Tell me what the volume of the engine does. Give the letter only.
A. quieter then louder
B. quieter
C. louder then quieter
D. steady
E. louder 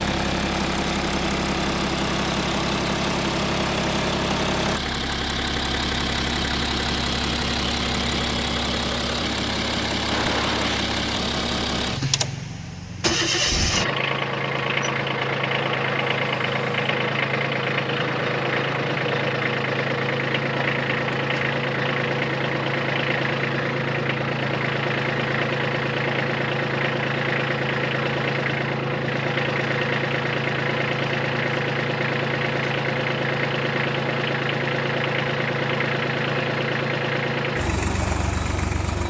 D.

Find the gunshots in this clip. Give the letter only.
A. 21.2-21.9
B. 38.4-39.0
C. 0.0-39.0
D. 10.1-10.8
D.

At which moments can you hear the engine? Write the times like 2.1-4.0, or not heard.
0.0-39.0.